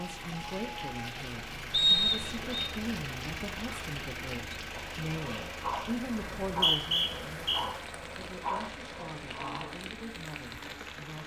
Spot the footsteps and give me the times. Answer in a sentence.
You can't hear the footsteps here.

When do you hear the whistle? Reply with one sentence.
The whistle can be heard from 1.7 to 2.7 s and from 6.4 to 7.6 s.